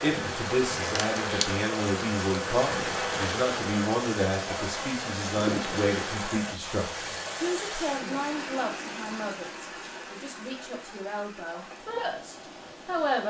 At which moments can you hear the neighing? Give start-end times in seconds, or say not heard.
not heard.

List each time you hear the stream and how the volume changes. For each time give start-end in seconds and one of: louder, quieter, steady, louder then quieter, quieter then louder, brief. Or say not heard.
0.0-13.2 quieter.